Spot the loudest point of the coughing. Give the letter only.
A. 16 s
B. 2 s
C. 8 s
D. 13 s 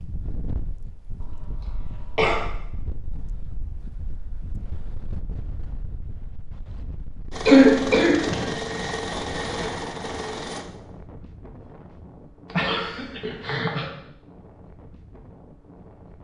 C.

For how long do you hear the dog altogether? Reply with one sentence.
The dog can't be heard in this clip.